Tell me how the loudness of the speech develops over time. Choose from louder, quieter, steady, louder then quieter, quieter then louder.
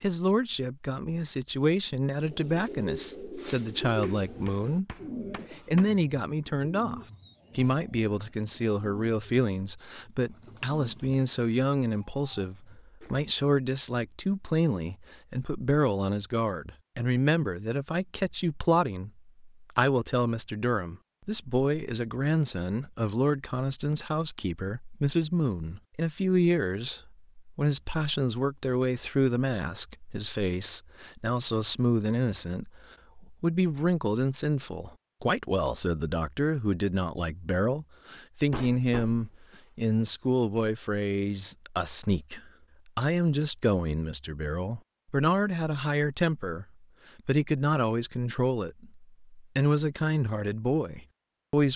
steady.